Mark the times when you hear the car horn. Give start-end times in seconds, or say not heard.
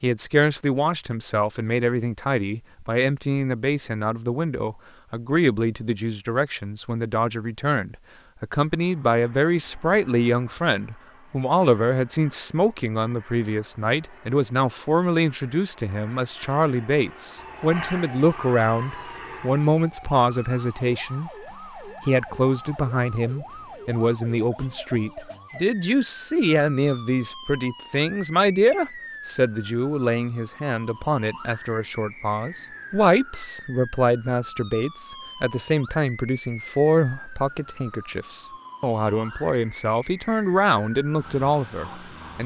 not heard.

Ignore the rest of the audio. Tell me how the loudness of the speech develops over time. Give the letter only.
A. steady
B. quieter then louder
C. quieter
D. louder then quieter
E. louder
A.